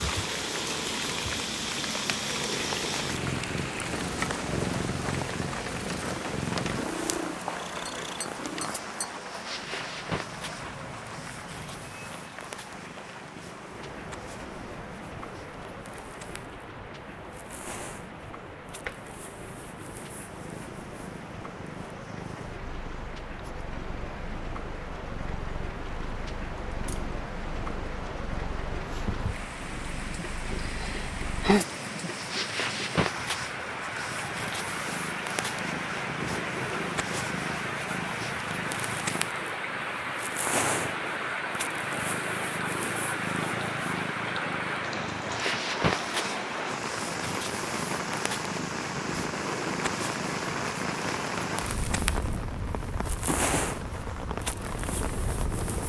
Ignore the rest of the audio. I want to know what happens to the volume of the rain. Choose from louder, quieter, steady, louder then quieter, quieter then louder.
quieter then louder.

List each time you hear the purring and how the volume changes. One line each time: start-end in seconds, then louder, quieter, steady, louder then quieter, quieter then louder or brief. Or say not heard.
0.0-55.8 quieter then louder.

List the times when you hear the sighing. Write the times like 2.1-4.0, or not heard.
30.6-31.6.